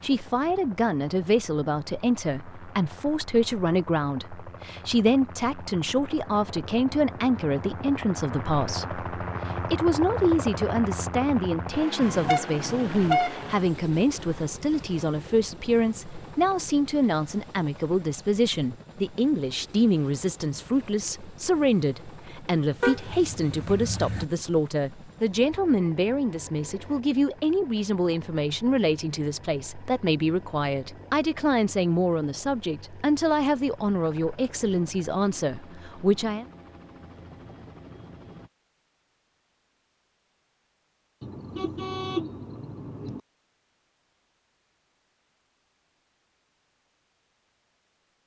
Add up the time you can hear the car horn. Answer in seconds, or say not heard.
5 s.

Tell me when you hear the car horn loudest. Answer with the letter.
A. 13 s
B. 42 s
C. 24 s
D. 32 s
A.